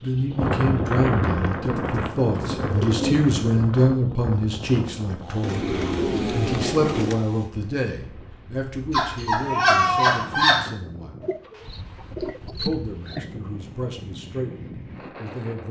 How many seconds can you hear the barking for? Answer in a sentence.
You can hear the barking for 2 seconds altogether.